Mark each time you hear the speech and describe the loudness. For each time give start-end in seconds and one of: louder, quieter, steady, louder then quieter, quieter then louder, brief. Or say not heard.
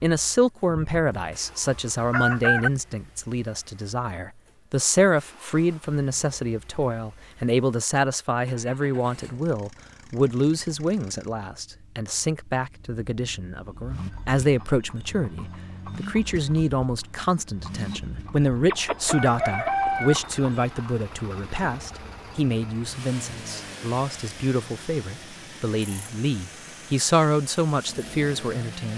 0.0-28.9 steady.